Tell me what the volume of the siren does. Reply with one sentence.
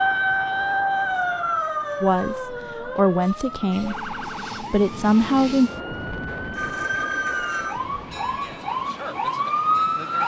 The volume of the siren goes down, then up.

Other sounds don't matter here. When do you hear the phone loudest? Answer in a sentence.
The loudest moment of the phone is at 7 seconds.